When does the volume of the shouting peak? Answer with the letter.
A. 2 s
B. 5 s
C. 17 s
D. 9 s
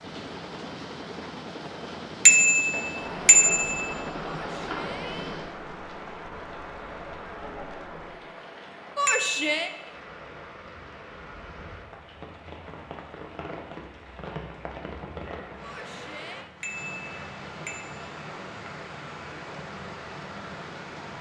D.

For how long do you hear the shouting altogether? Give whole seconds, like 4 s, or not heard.
3 s.